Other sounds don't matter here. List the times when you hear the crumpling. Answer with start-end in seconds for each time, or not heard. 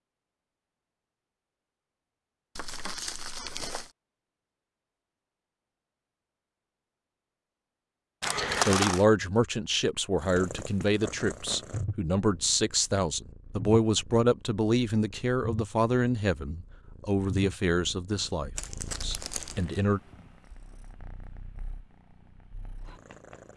2.5-3.9, 8.2-9.1, 18.6-19.8.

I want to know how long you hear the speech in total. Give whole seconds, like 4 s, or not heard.
11 s.